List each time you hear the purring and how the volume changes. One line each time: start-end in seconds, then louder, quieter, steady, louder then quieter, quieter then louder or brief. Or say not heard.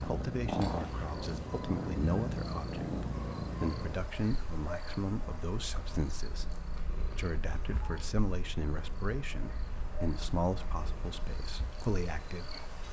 0.0-12.8 quieter.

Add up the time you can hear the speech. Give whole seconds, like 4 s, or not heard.
13 s.